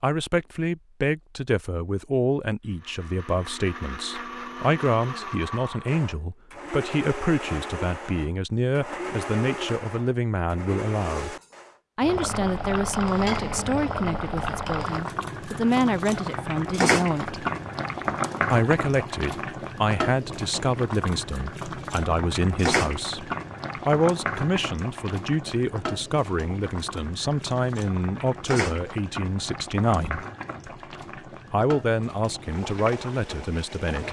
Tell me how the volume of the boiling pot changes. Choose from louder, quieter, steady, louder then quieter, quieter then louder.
quieter.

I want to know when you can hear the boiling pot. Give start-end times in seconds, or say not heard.
12.0-34.0.